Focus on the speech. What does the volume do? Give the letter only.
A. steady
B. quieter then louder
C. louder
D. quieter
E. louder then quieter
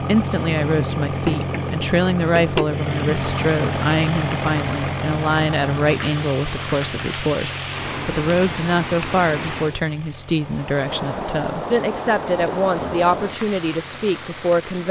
A.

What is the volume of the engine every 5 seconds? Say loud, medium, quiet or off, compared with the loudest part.
loud, medium, quiet.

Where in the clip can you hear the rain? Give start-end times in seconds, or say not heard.
3.0-14.8.